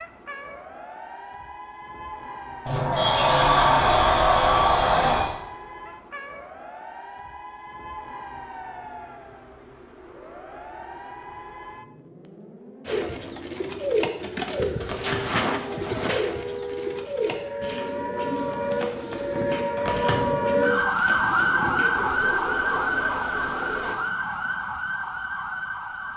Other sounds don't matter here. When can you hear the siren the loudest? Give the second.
21 s.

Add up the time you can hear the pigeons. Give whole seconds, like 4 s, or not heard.
11 s.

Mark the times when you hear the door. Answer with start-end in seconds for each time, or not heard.
2.6-5.3, 14.8-15.4, 19.8-20.4.